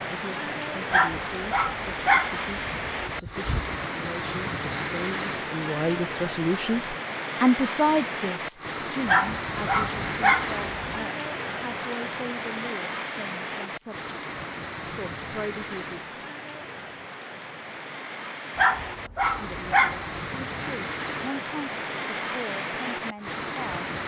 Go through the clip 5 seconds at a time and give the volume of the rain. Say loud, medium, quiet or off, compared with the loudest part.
loud, loud, loud, medium, loud.